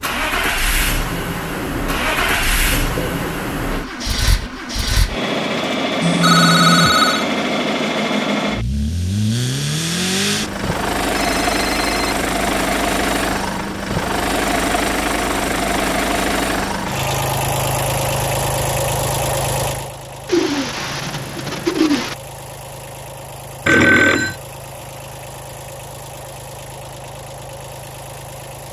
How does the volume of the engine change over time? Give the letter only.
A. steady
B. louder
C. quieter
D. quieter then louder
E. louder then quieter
C.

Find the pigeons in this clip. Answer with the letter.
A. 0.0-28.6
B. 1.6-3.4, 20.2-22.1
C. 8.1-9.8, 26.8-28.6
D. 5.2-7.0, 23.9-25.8
B.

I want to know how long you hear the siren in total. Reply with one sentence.
You can't hear the siren here.